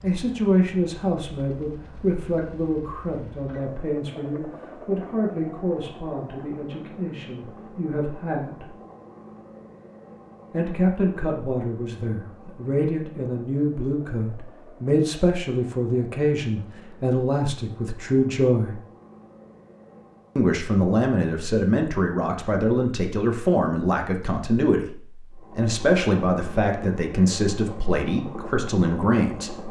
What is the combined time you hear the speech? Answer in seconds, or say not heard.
26 s.